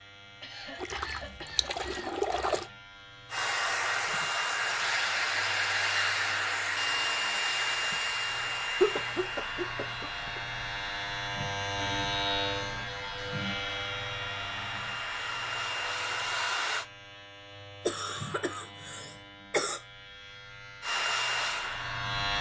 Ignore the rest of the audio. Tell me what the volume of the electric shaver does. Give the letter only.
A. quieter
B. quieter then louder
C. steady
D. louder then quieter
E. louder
D.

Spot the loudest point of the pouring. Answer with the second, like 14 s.
2 s.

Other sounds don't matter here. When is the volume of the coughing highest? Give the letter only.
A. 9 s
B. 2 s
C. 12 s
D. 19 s
A.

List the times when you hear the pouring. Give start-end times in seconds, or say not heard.
0.8-2.7.